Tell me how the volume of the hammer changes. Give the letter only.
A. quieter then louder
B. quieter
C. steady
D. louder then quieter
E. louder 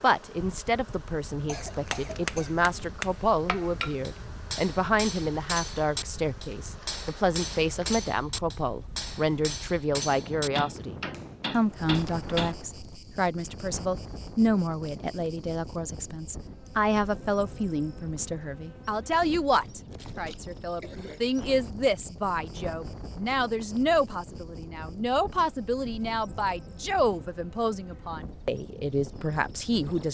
C.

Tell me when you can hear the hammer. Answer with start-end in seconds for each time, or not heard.
1.9-12.6.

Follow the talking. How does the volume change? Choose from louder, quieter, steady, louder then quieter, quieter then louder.
steady.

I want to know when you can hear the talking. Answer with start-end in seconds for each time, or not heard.
0.0-30.1.